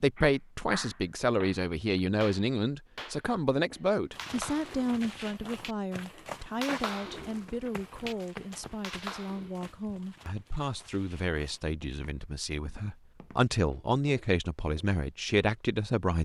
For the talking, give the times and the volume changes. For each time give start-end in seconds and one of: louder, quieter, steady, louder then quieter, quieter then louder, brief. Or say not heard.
0.0-16.1 quieter then louder.